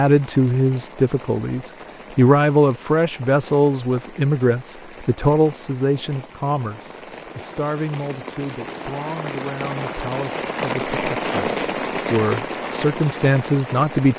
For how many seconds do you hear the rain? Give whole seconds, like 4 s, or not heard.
14 s.